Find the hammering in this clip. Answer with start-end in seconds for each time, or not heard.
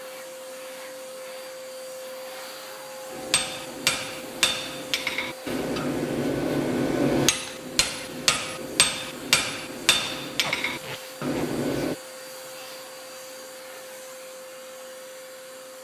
3.1-11.9.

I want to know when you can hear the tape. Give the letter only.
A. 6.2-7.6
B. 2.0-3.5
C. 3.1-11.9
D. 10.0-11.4
D.